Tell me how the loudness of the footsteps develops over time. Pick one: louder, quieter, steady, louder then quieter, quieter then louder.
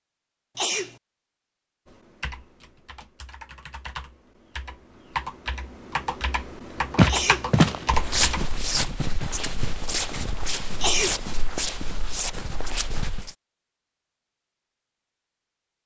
quieter.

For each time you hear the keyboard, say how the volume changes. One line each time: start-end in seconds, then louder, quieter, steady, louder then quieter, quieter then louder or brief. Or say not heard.
1.9-8.4 louder.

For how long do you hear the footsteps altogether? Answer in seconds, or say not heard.
6 s.